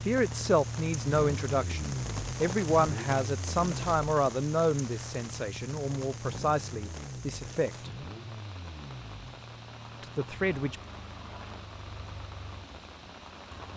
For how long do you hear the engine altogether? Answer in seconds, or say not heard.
14 s.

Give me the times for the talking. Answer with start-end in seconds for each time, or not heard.
0.1-7.9, 10.0-10.8.